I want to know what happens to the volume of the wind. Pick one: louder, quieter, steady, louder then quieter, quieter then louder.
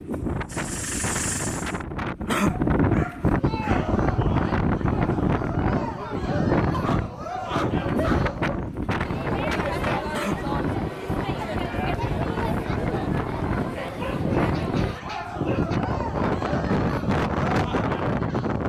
steady.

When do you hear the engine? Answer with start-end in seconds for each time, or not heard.
0.2-1.9.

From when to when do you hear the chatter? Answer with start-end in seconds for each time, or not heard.
3.2-18.6.